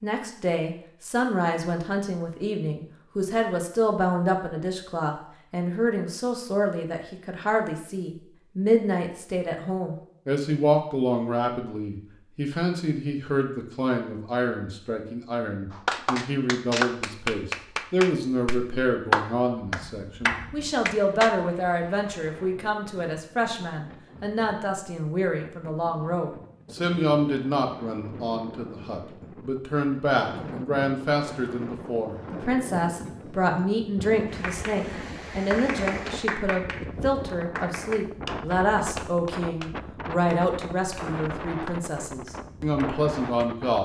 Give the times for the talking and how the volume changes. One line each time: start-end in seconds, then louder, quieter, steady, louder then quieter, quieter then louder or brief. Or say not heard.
0.0-43.7 steady.